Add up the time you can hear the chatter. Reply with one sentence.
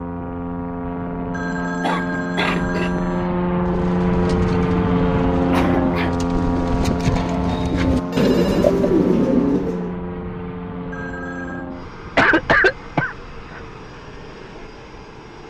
You can't hear the chatter here.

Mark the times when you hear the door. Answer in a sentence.
The door can't be heard in this clip.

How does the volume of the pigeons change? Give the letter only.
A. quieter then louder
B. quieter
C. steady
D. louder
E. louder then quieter
D.